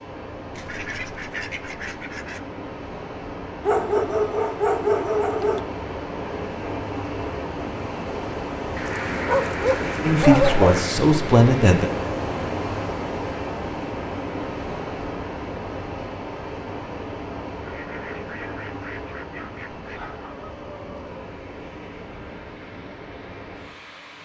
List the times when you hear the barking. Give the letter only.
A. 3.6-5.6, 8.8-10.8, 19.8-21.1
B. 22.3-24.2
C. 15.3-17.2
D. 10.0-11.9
A.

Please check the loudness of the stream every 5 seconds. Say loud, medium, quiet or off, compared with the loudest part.
medium, loud, loud, medium, medium.